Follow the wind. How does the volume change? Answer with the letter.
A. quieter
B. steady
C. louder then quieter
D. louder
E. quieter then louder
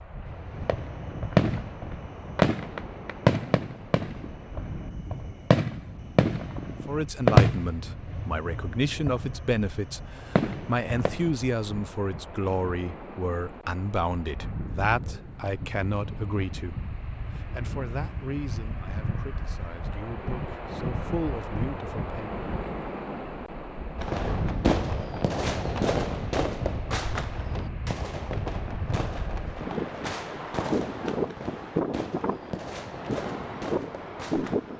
D.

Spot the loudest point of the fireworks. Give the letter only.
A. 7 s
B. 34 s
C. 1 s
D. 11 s
A.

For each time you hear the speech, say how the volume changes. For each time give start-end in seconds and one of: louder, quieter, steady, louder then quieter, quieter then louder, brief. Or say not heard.
6.8-22.4 quieter.